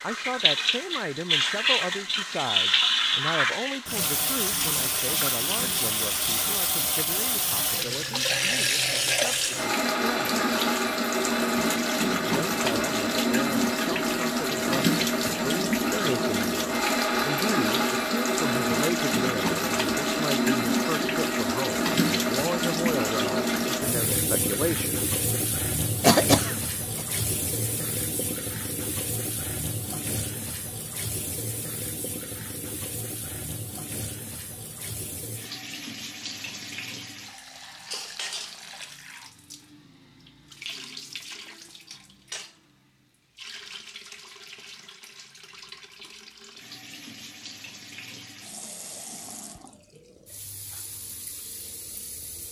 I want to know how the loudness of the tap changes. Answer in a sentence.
The volume of the tap goes down.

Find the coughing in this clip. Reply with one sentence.
You can hear the coughing from 26.0 to 27.1 s.